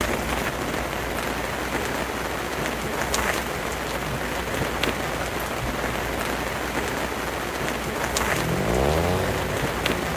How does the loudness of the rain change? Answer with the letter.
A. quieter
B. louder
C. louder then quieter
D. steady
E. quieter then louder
D.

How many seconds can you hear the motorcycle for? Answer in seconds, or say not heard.
2 s.